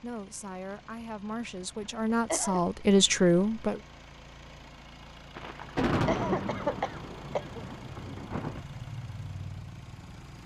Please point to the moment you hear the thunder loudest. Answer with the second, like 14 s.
6 s.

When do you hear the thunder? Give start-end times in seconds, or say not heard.
5.3-8.6.